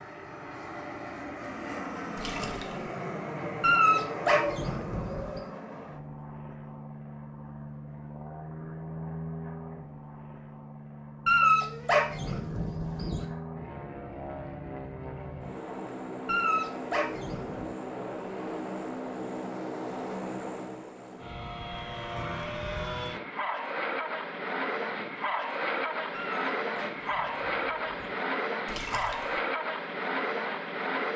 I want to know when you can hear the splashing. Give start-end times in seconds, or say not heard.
2.1-2.9, 28.6-29.4.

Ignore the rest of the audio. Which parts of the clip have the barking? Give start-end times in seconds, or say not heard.
3.6-5.4, 11.2-13.2, 16.2-17.7, 26.1-28.1.